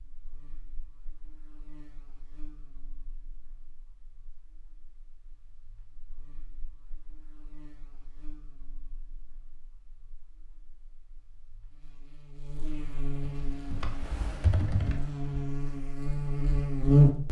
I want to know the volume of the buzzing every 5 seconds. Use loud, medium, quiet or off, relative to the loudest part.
quiet, quiet, quiet, loud.